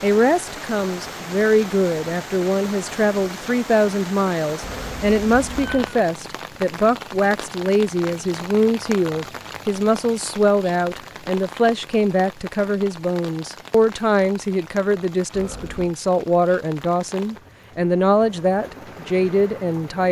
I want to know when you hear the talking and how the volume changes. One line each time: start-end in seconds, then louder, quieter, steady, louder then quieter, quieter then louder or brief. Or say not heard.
0.0-20.0 steady.